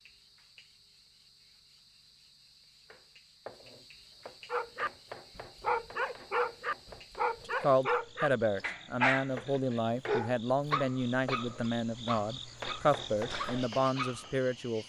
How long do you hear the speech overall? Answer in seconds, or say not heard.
7 s.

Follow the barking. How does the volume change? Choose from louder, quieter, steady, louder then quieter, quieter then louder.
quieter.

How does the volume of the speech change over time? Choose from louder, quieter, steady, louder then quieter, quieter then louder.
steady.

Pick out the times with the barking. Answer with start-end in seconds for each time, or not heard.
4.5-14.3.